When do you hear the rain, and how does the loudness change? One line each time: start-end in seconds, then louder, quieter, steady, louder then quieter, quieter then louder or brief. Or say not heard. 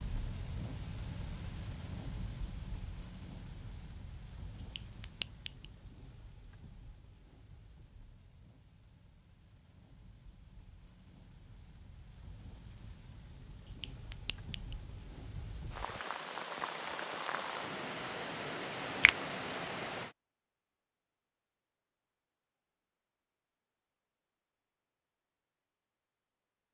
0.0-20.1 quieter then louder.